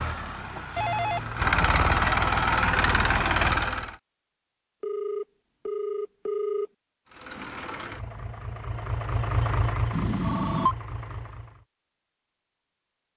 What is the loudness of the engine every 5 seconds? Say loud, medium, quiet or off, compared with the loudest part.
loud, medium, quiet.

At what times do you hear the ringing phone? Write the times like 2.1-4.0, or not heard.
0.8-1.6, 4.8-6.7, 9.9-10.8.